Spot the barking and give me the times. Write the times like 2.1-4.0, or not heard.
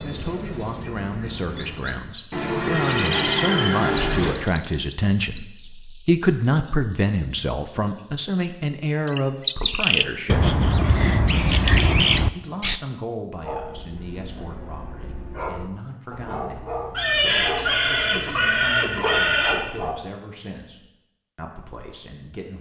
13.4-20.0.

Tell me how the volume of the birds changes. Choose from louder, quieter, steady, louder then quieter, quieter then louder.
louder.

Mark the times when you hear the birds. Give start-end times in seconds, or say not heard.
0.0-12.8.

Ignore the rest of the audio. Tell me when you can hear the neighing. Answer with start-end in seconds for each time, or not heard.
2.3-4.3, 16.9-19.6.